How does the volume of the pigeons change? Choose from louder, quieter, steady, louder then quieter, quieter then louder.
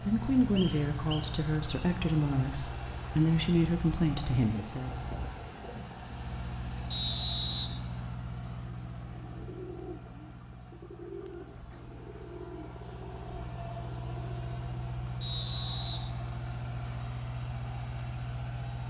quieter.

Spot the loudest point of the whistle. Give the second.
7 s.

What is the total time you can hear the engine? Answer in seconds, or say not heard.
19 s.